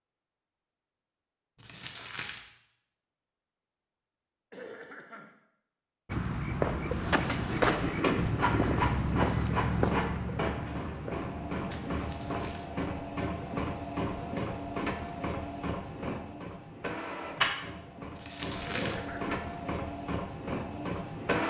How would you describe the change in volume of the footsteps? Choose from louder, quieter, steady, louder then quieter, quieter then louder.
quieter.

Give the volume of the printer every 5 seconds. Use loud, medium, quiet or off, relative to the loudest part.
off, loud, loud, loud, loud.